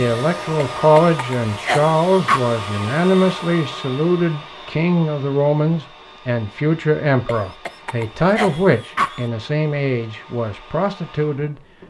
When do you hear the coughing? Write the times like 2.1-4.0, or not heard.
0.6-2.5, 7.2-9.2.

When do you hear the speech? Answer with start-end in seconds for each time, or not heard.
0.0-11.6.